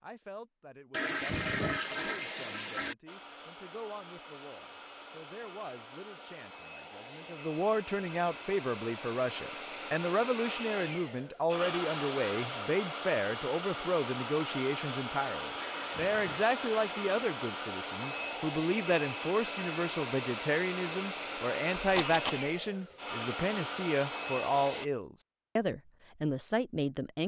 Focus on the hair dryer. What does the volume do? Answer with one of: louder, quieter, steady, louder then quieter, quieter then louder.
louder.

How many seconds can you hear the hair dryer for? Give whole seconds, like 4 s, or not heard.
22 s.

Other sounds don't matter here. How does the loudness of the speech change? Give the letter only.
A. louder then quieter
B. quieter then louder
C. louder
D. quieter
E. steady
C.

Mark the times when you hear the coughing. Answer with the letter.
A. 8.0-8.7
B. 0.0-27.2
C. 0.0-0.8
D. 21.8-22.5
D.